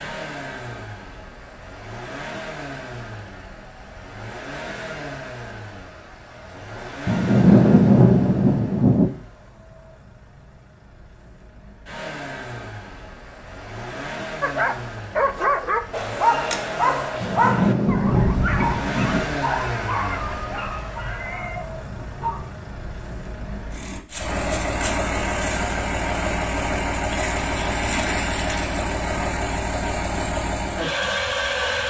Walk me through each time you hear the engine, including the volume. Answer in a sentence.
The engine can be heard from 0.0 to 31.8 s, getting louder.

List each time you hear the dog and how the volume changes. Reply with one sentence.
You can hear the dog from 14.4 to 22.6 s, getting quieter.